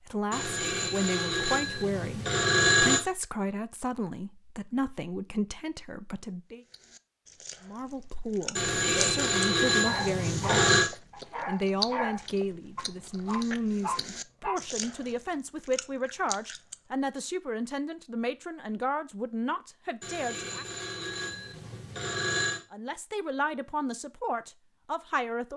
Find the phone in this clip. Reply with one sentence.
You can hear the phone from 0.3 to 3.0 s, from 8.6 to 10.9 s and from 20.0 to 22.6 s.